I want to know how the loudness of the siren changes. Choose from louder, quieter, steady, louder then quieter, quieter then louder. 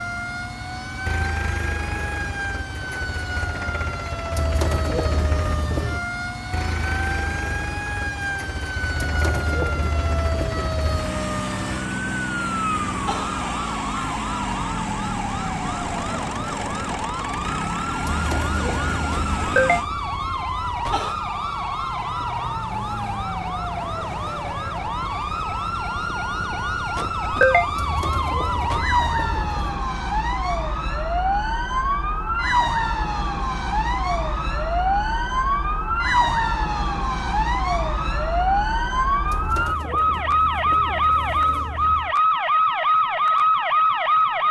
louder.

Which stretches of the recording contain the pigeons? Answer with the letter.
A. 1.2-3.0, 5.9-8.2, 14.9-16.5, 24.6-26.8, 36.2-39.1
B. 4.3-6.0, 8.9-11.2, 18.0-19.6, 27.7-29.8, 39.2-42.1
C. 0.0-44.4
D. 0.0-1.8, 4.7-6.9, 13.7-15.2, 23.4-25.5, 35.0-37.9
B.